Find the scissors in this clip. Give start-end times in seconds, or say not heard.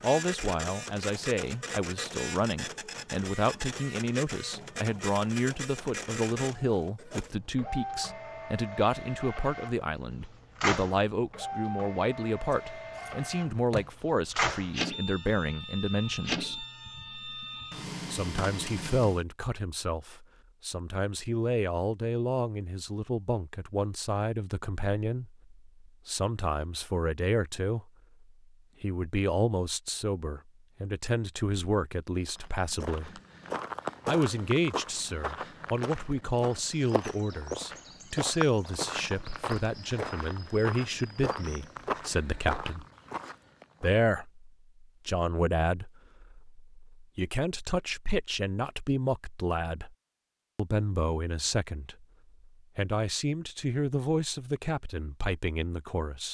12.5-13.9.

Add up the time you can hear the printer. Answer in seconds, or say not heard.
19 s.